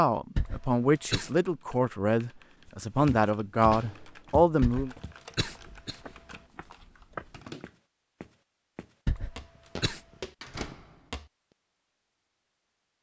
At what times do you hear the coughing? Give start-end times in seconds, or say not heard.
0.3-1.3, 4.6-6.4, 9.1-10.0.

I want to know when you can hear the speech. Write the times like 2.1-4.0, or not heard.
0.0-4.9.